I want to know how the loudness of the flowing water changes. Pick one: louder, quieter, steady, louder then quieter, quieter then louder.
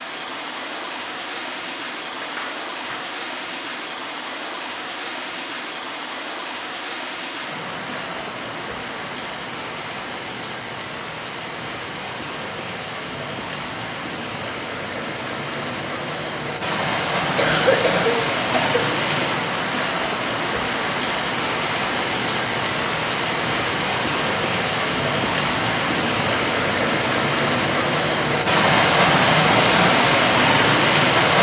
louder.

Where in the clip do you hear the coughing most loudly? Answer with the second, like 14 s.
18 s.